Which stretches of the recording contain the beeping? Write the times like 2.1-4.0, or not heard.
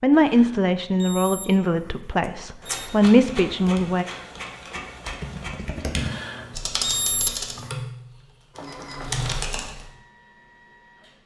0.2-1.4, 2.2-2.9, 6.0-7.8.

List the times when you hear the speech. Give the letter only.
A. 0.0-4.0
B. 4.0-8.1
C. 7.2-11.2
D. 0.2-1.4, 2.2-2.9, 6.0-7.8
A.